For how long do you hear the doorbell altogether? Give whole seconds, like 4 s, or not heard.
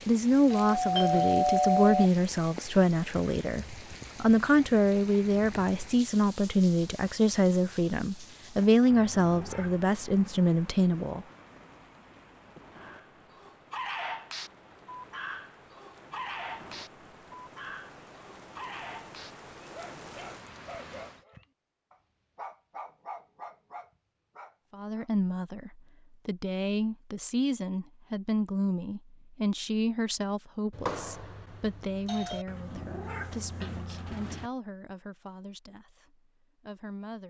3 s.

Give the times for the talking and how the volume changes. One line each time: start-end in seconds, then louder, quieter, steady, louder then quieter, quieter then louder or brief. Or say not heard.
0.1-11.2 steady
24.7-37.2 quieter.